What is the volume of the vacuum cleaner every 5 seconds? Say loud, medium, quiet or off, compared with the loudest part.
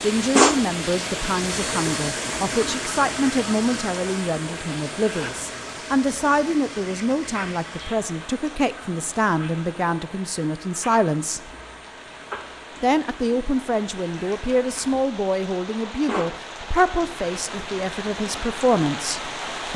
loud, medium, quiet, medium.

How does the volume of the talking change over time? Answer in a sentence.
The loudness of the talking stays about the same.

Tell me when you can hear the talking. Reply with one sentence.
You can hear the talking from 0.0 to 11.5 s and from 12.8 to 19.7 s.